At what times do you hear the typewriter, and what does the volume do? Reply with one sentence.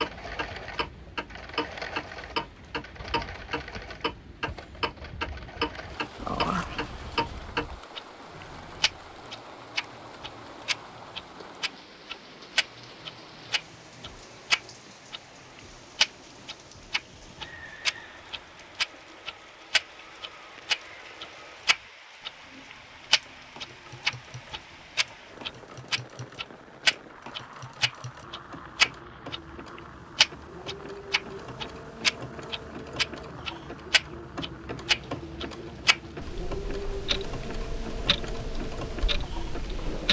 You can't hear the typewriter here.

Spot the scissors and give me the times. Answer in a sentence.
The scissors can be heard from 6.2 to 7.8 s.